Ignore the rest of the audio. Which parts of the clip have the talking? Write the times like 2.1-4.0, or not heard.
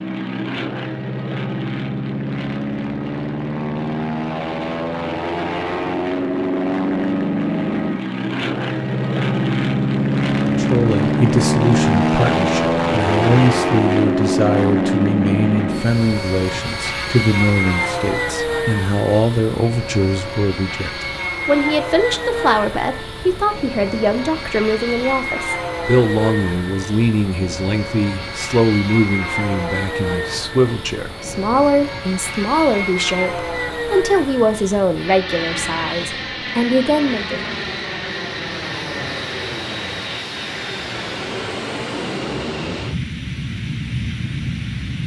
10.4-37.4.